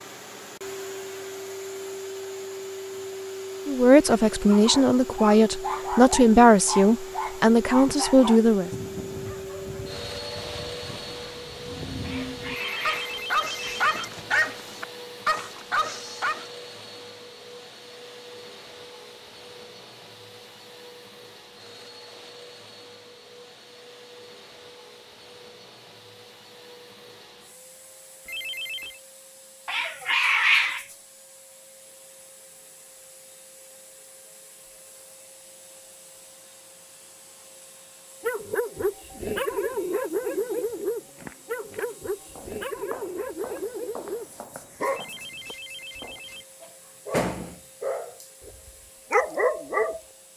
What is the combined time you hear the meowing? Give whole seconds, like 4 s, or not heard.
3 s.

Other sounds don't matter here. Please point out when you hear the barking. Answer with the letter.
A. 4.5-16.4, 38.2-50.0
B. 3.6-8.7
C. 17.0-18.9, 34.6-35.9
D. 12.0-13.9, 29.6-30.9
A.